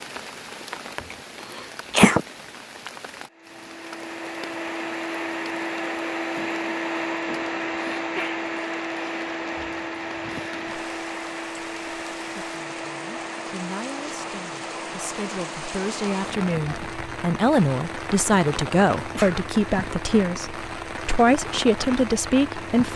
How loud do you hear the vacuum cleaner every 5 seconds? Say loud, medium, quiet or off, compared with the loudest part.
medium, loud, medium, medium, medium.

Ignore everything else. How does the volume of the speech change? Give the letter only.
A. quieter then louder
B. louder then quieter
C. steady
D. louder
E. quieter
D.